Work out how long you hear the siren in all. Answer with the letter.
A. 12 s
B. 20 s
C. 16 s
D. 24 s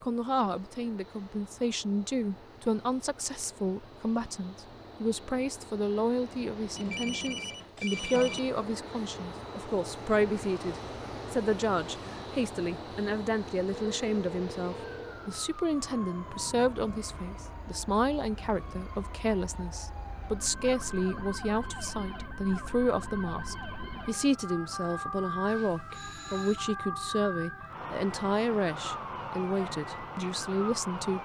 C.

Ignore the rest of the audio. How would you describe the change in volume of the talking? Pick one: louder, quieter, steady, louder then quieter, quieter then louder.
steady.